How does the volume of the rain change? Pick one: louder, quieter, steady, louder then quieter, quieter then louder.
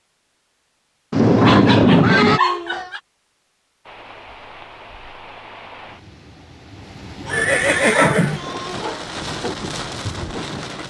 louder.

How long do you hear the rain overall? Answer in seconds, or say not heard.
7 s.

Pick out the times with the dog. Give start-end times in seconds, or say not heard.
1.4-3.0, 7.2-9.1.